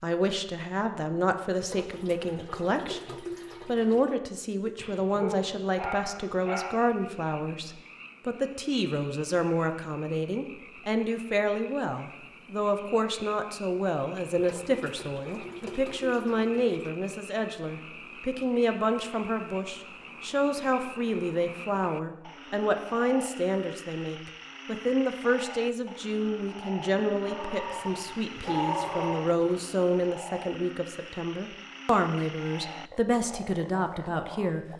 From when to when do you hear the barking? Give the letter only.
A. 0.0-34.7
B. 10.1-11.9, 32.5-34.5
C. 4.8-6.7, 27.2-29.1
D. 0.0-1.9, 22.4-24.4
C.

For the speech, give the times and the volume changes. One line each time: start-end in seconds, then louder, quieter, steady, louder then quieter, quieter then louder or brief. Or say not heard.
0.0-34.7 steady.